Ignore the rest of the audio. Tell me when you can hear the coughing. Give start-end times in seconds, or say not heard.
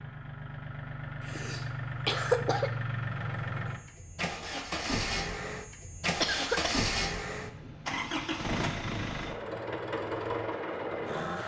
1.2-2.7, 6.2-6.8.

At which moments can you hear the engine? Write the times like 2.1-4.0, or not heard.
0.0-11.4.